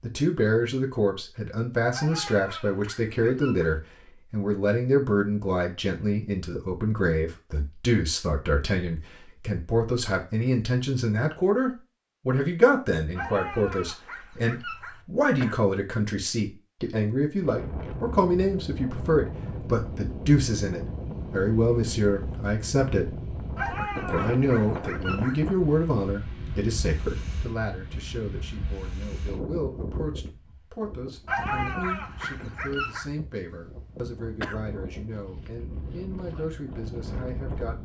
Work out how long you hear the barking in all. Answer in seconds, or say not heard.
7 s.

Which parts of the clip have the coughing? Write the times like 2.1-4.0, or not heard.
14.5-15.6, 33.6-34.6.